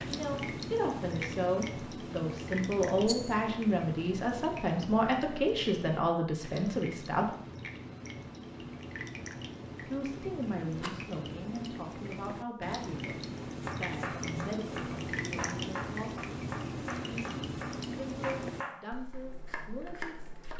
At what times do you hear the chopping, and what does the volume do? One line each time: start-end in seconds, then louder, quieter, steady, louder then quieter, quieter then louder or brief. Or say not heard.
13.4-20.5 steady.